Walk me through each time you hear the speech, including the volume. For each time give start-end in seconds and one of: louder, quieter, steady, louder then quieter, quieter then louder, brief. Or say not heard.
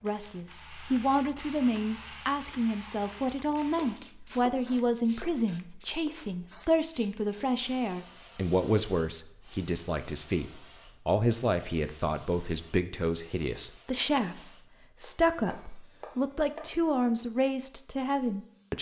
0.0-18.7 steady.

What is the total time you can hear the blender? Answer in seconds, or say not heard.
not heard.